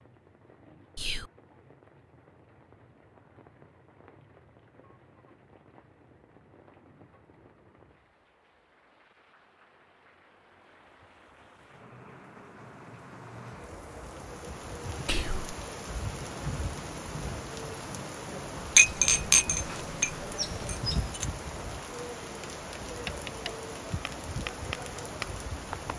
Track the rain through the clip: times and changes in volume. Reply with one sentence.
The rain can be heard from 0.0 to 25.9 s, getting louder.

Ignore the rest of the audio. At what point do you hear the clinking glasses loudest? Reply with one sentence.
The loudest moment of the clinking glasses is at 19 seconds.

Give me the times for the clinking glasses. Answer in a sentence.
You can hear the clinking glasses from 18.8 to 21.2 s.